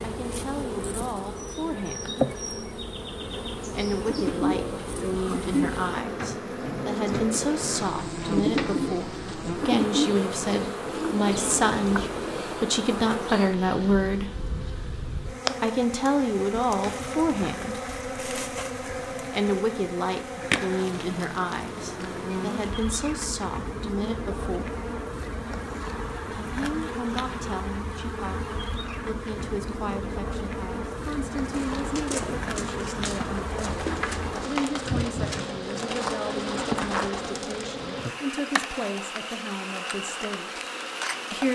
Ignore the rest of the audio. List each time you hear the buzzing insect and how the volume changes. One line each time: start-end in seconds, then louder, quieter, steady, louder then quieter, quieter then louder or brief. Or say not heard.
0.0-41.5 steady.